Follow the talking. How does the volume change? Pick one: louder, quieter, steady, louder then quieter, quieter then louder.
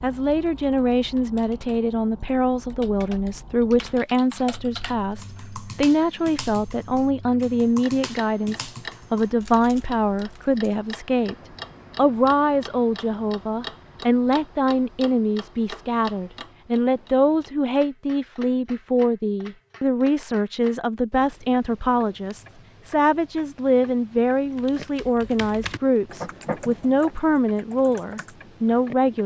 steady.